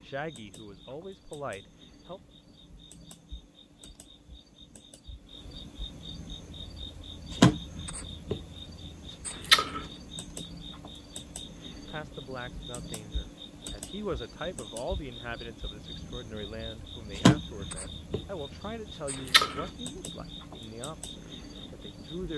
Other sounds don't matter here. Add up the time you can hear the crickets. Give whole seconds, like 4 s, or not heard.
22 s.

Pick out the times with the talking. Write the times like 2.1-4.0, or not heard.
0.0-2.2, 11.8-22.3.